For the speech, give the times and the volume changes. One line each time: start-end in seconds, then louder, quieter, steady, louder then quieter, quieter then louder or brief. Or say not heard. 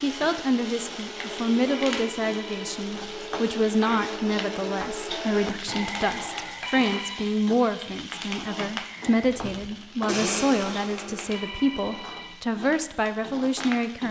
0.0-14.0 steady.